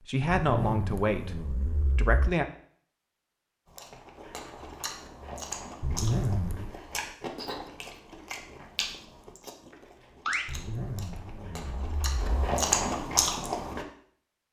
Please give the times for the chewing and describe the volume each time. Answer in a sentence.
The chewing can be heard from 3.8 to 13.8 s, getting louder.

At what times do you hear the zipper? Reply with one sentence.
The zipper can be heard from 0.3 to 2.3 s, from 5.8 to 6.7 s and from 10.4 to 12.4 s.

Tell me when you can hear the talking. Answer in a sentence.
You can hear the talking from 0.0 to 2.5 s.